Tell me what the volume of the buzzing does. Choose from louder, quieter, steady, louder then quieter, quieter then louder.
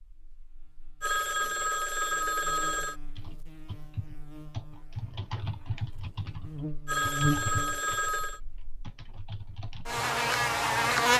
louder.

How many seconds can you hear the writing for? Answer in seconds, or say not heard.
not heard.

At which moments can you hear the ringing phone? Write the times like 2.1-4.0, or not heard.
1.0-3.0, 6.8-8.4.